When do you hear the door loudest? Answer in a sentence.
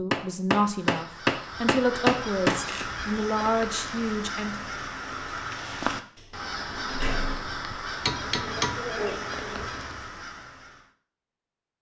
The volume of the door peaks at 7 seconds.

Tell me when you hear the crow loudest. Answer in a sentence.
The loudest moment of the crow is at 6 seconds.